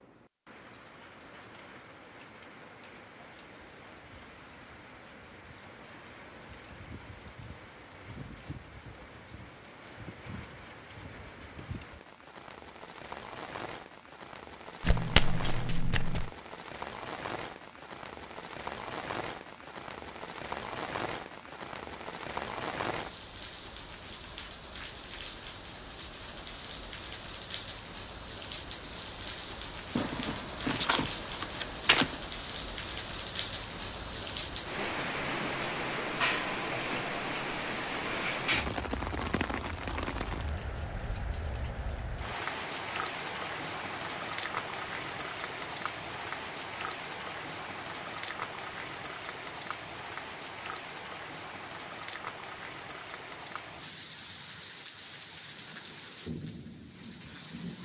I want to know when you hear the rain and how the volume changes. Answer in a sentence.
You can hear the rain from 0.0 to 57.8 s, getting louder then quieter.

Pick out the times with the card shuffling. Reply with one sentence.
You can hear the card shuffling from 14.8 to 16.3 s and from 29.9 to 32.2 s.